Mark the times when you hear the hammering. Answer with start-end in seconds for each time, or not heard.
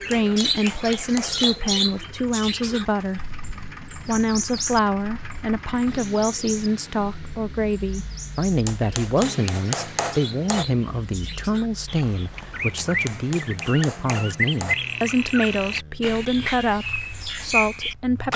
0.1-1.6, 8.7-10.7, 12.8-14.8.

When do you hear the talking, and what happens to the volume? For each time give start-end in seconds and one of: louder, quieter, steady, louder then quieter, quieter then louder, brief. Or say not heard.
0.1-18.3 steady.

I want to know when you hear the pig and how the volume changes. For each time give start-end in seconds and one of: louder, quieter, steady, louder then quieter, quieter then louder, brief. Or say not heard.
not heard.